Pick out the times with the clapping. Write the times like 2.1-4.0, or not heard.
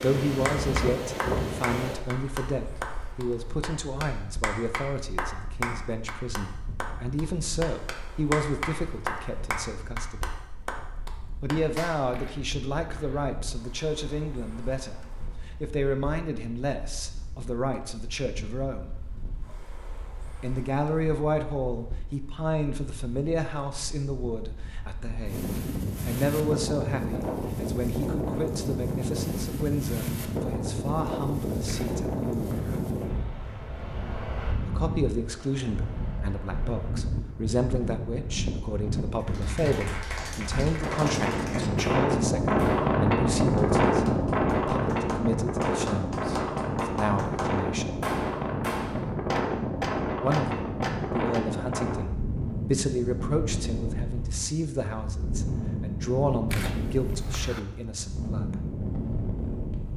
0.0-12.1, 39.2-51.5.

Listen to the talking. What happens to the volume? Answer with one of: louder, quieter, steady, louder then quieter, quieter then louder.
steady.